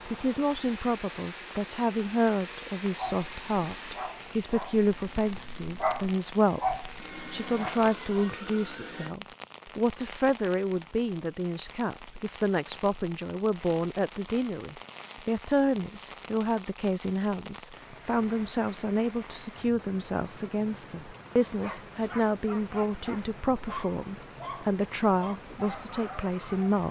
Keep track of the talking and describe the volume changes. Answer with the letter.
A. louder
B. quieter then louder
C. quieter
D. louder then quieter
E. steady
E.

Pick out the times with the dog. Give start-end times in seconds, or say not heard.
3.0-8.3, 21.4-26.8.